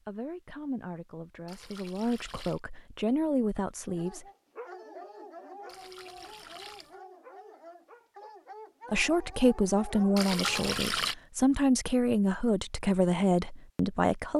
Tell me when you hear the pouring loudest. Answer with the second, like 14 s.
11 s.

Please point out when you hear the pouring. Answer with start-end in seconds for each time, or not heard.
1.4-2.6, 5.7-7.0, 10.2-11.2.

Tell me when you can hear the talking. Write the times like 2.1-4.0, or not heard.
0.1-4.2, 8.9-14.3.